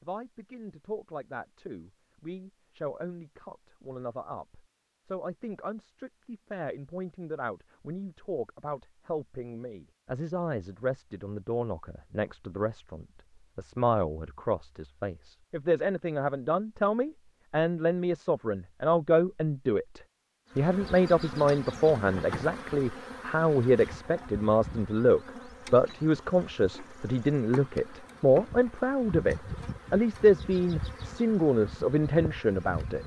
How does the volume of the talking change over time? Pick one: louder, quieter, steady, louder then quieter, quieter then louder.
louder.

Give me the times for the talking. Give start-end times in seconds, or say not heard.
0.0-33.0.